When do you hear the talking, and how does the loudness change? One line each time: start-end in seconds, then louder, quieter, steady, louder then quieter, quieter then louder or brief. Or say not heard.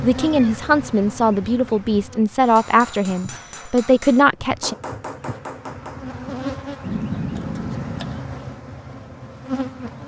0.0-4.8 steady.